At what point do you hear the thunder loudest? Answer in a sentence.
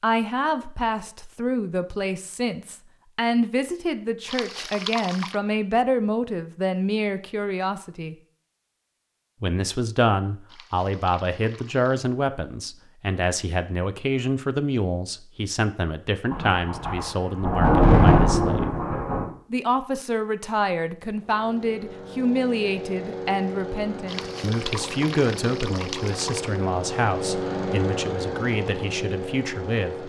The loudest moment of the thunder is at 18 seconds.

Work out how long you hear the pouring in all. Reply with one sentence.
The pouring can be heard for 5 seconds in total.